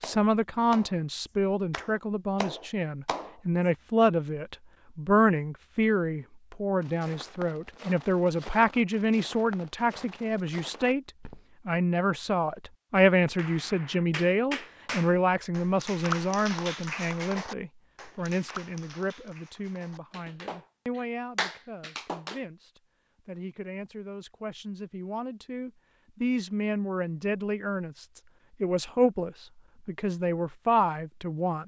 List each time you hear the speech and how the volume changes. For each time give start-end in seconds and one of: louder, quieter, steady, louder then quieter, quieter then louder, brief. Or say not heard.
0.0-31.6 quieter then louder.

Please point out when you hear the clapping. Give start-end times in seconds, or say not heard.
0.0-3.4, 13.3-22.4.